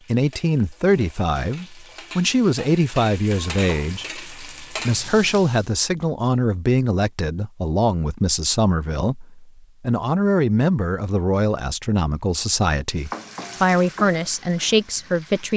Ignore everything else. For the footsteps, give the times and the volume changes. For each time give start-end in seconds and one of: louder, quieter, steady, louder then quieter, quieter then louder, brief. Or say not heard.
not heard.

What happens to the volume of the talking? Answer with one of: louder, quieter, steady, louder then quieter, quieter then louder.
steady.